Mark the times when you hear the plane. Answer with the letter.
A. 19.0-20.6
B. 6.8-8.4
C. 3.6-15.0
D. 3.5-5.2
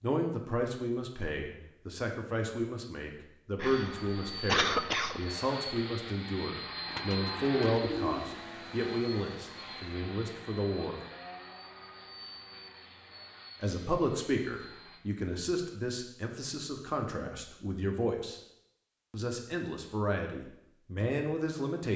C.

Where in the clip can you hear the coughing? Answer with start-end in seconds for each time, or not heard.
3.5-5.2.